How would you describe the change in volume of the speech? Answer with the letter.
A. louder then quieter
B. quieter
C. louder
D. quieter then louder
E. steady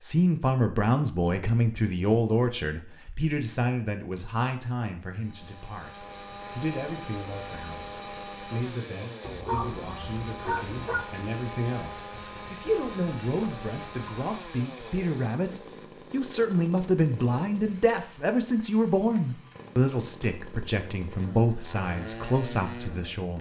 D.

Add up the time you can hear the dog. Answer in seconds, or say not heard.
2 s.